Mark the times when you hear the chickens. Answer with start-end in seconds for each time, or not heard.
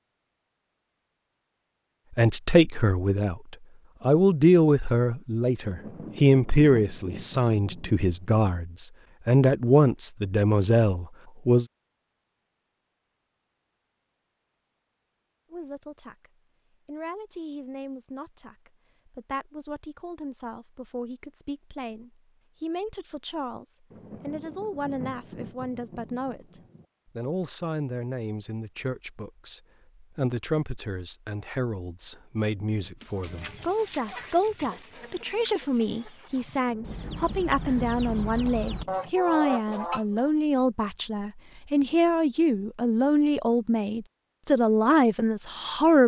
33.0-40.3.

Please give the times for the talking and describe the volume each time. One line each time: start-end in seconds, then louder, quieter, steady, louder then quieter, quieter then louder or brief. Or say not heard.
2.1-11.7 steady
15.5-46.0 louder.